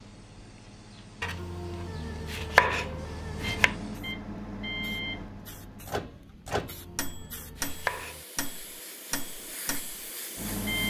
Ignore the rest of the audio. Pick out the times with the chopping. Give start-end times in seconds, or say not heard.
1.2-3.8, 6.5-8.2.